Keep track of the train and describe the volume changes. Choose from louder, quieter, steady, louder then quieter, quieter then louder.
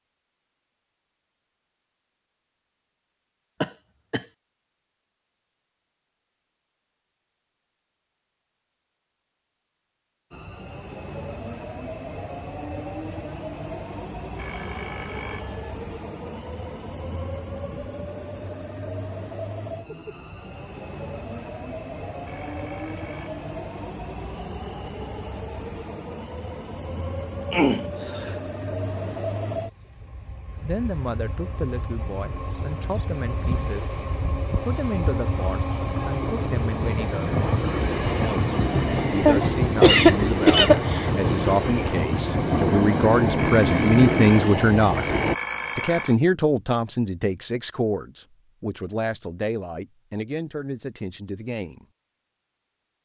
louder.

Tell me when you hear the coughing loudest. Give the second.
40 s.